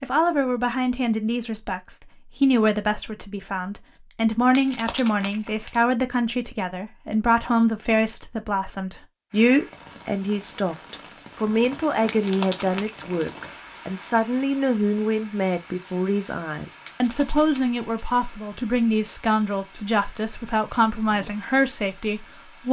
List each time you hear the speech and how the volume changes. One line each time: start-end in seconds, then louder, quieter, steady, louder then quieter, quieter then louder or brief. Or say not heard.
0.0-22.6 steady.